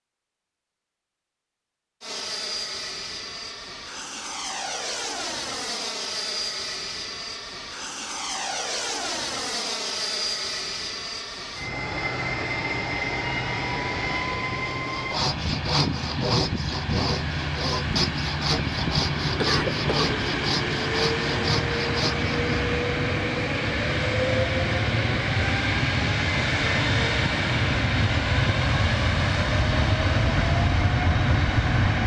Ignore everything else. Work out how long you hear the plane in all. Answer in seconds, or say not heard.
30 s.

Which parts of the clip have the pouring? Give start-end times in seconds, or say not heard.
not heard.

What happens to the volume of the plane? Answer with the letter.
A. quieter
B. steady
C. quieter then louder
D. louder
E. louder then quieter
D.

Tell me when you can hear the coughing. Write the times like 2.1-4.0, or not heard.
19.4-20.2.